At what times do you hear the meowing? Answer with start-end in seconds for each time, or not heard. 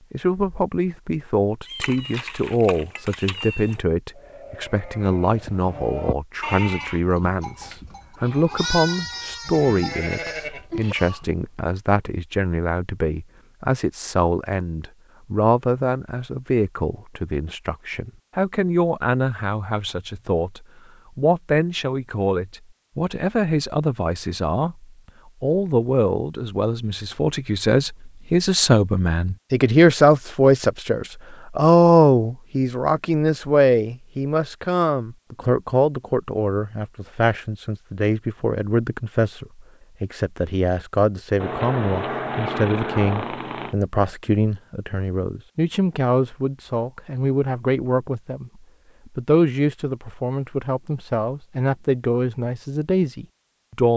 1.6-3.8, 41.4-43.8.